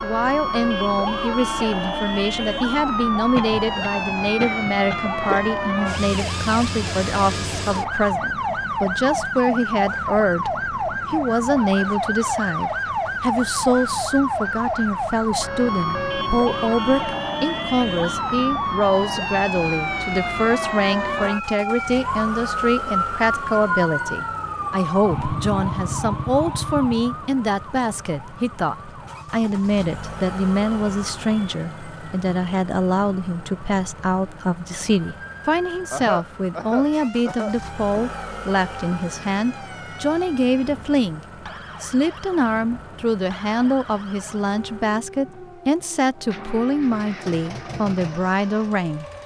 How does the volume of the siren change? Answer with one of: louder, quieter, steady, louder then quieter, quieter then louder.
quieter.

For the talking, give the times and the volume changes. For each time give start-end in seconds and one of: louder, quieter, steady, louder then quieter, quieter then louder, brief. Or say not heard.
0.0-49.0 steady.